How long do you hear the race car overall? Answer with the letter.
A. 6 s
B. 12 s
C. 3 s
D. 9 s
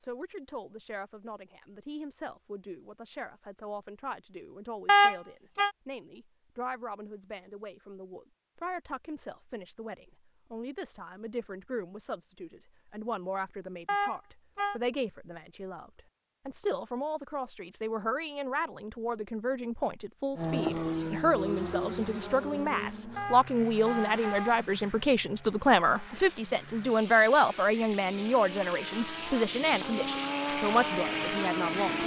B.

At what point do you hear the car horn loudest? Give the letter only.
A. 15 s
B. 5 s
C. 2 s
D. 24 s
B.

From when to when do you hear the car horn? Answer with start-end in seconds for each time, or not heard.
4.8-5.7, 13.8-14.8, 23.1-24.6.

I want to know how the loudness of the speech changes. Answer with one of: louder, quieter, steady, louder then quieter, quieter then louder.
louder.